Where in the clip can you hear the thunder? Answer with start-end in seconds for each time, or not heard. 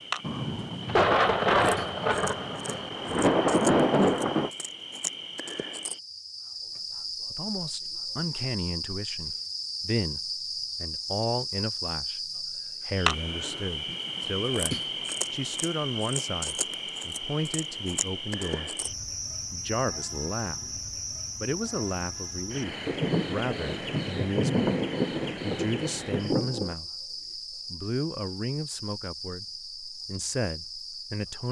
0.2-4.5, 22.9-26.8.